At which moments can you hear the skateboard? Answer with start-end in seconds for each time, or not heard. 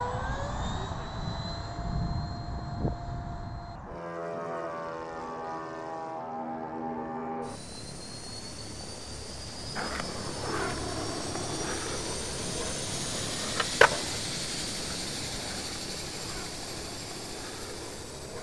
9.8-18.3.